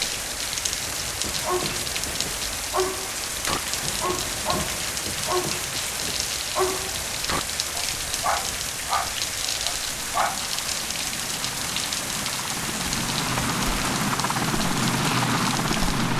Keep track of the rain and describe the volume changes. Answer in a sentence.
The loudness of the rain stays about the same.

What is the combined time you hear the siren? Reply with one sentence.
The siren can't be heard in this clip.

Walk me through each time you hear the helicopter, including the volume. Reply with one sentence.
The helicopter can be heard from 0.0 to 16.1 s, getting louder.